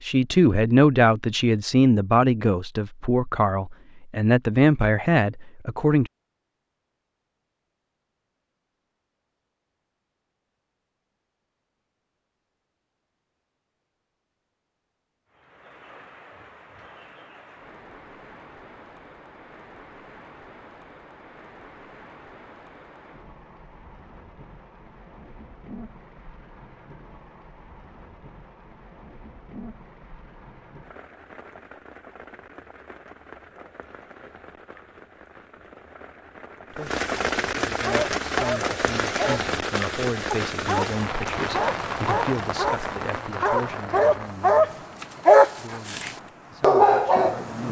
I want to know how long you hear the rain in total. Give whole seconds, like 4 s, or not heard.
32 s.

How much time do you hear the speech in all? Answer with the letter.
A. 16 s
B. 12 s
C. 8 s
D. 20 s
A.